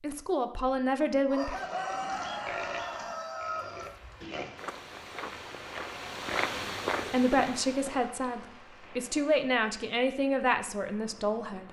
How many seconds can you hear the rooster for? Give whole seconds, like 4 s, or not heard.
3 s.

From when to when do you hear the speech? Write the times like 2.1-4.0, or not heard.
0.0-1.6, 7.1-11.6.